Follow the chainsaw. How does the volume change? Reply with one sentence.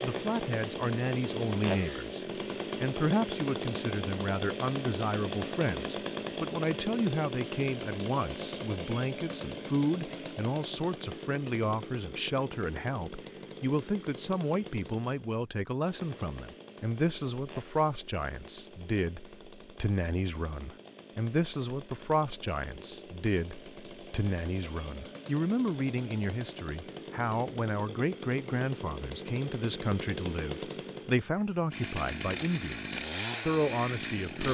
The volume of the chainsaw goes down, then up.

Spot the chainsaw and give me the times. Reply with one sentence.
You can hear the chainsaw from 0.0 to 34.4 s.